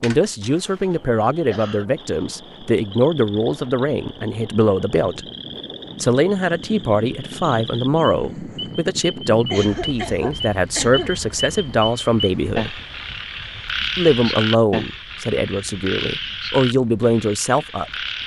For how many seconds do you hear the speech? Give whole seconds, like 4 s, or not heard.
16 s.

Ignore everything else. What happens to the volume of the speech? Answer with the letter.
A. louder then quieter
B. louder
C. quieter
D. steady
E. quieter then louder
D.